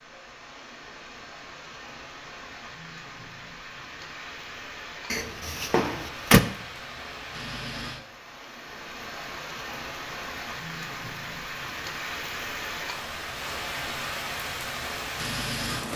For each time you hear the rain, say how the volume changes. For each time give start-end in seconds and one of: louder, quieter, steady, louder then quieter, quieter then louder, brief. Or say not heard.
0.0-15.9 louder.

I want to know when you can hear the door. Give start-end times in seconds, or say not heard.
5.1-6.4.